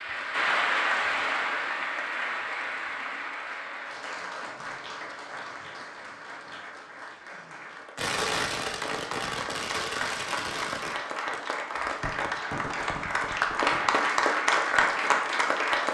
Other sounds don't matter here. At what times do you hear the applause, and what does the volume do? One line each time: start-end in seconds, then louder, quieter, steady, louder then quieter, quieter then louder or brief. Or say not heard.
0.0-15.9 quieter then louder.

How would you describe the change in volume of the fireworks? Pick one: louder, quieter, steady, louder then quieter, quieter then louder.
quieter.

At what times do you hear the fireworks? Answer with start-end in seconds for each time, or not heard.
8.0-14.0.